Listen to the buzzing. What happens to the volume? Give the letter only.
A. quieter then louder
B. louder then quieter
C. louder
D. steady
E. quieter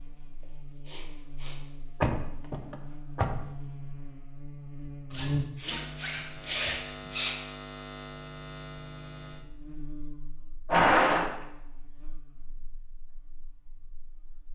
B.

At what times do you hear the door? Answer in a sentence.
The door can be heard from 2.0 to 3.5 s and from 10.7 to 11.4 s.